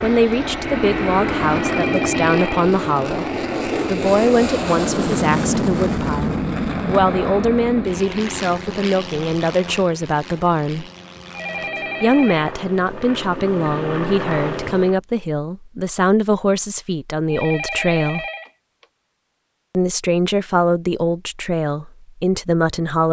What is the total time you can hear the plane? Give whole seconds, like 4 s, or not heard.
15 s.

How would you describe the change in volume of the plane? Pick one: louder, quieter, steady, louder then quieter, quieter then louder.
quieter then louder.